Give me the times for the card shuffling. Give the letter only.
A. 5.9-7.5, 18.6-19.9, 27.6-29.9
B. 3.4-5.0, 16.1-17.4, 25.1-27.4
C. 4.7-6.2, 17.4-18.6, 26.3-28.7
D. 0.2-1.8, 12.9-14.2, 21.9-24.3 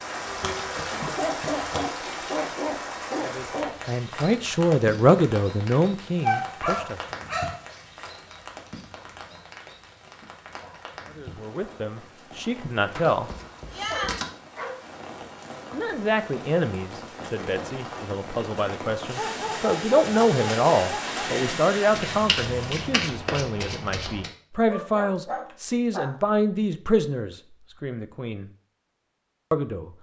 D.